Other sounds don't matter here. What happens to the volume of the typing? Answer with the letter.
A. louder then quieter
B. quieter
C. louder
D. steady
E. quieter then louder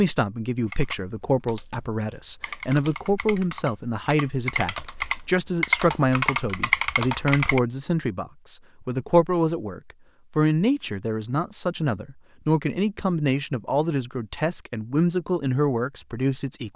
C.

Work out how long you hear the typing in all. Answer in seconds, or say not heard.
7 s.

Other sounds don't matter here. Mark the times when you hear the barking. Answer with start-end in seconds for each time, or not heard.
not heard.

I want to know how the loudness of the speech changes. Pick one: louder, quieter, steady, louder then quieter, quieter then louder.
steady.